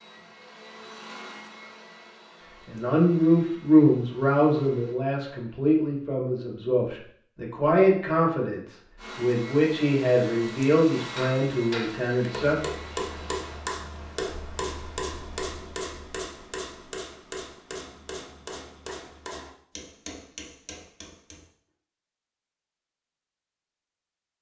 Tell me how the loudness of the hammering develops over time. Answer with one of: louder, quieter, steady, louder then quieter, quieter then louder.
quieter.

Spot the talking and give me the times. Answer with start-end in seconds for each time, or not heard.
2.6-12.6.